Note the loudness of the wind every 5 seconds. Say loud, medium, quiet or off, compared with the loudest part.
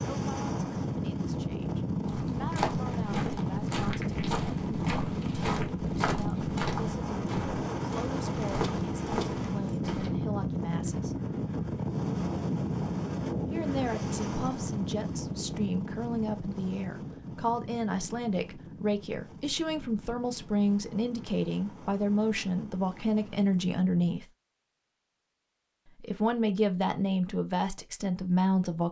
loud, loud, loud, medium, quiet, off.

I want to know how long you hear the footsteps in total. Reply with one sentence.
The footsteps can be heard for 8 seconds in total.